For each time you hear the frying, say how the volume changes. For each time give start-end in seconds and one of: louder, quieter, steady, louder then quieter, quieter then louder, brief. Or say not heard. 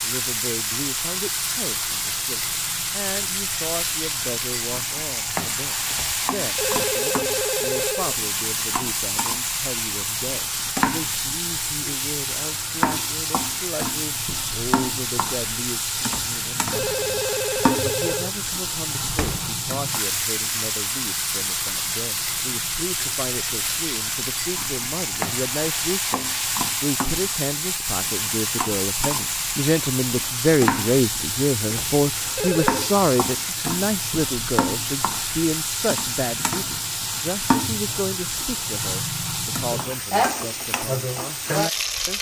0.0-42.1 steady.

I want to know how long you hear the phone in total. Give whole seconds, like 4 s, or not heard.
6 s.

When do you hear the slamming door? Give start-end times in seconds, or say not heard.
19.1-19.6.